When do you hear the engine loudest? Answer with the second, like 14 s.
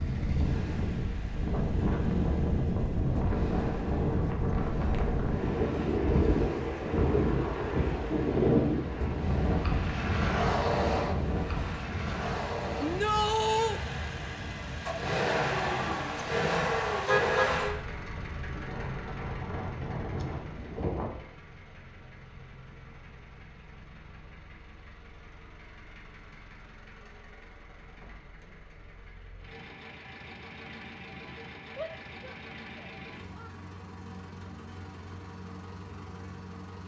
17 s.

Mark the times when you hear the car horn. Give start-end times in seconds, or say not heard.
17.1-17.8.